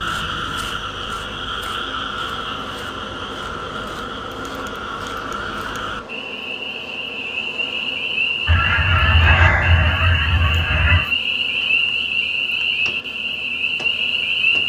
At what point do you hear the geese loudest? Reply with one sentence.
The loudest moment of the geese is at 9 seconds.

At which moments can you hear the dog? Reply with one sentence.
You can't hear the dog here.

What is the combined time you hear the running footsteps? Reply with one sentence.
The running footsteps can't be heard in this clip.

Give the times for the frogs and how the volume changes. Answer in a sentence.
You can hear the frogs from 0.0 to 14.6 s, getting louder.